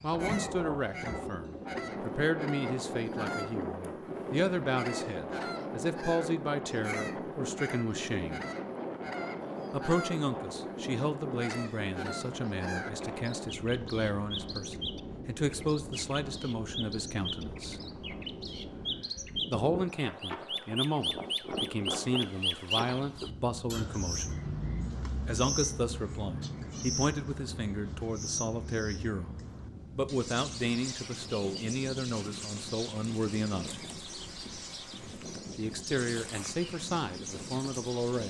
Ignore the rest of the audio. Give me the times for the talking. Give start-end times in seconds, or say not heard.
0.0-8.4, 9.7-17.8, 19.5-24.4, 25.2-29.4, 29.9-33.8, 35.5-38.2.